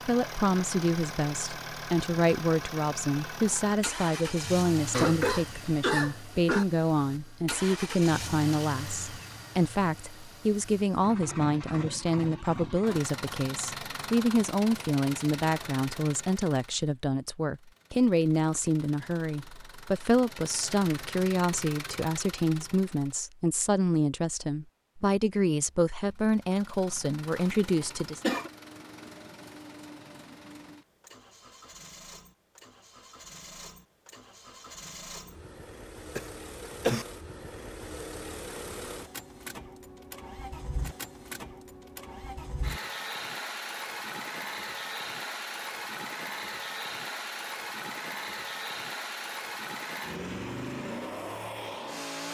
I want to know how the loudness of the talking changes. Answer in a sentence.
The loudness of the talking stays about the same.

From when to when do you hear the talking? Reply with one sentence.
You can hear the talking from 0.1 to 28.2 s.